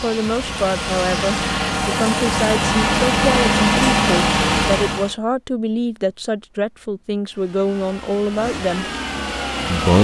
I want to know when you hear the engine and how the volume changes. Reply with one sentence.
You can hear the engine from 0.0 to 5.2 s, getting louder; and briefly from 7.2 to 10.0 s.